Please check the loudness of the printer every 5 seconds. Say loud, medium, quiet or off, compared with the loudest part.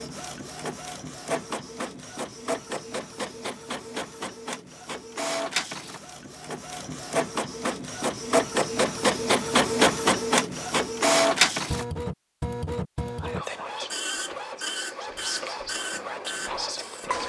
medium, loud, loud, medium.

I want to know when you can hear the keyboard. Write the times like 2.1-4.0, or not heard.
not heard.